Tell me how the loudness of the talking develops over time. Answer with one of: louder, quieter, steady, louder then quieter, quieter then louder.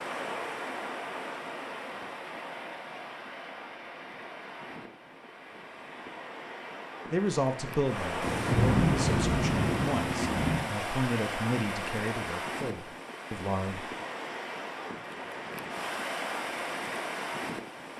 quieter.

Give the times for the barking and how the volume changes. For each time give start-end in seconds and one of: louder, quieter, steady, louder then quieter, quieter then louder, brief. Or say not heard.
not heard.